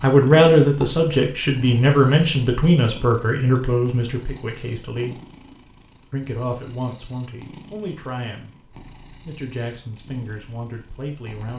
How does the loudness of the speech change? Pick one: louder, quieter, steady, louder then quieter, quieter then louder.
quieter.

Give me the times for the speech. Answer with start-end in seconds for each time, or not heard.
0.0-5.2, 6.1-11.5.